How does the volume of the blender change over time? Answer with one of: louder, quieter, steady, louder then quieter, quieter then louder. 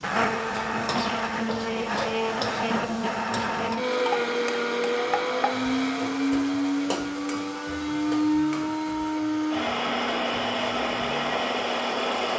steady.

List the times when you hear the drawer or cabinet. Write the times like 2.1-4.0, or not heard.
not heard.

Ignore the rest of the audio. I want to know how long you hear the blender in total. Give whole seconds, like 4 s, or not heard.
12 s.